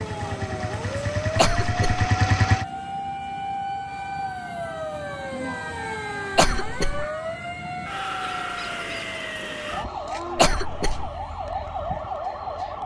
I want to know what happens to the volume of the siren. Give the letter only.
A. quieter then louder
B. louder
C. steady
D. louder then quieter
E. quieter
C.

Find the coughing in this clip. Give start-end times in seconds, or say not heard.
1.4-2.0, 6.3-7.0, 10.3-11.1.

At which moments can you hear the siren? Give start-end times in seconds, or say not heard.
0.0-12.8.